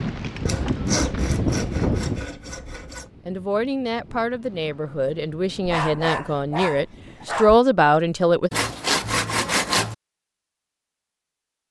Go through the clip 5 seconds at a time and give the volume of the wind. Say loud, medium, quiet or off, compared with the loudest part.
loud, quiet, off.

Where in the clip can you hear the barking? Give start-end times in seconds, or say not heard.
5.7-7.6.